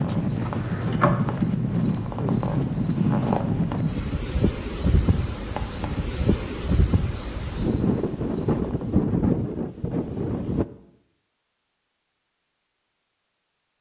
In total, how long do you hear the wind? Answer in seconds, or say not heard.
11 s.